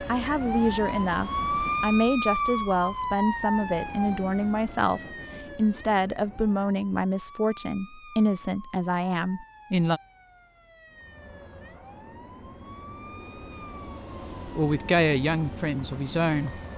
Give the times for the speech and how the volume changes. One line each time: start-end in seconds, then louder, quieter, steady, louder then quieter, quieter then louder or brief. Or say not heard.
0.1-10.0 steady
14.6-16.6 brief.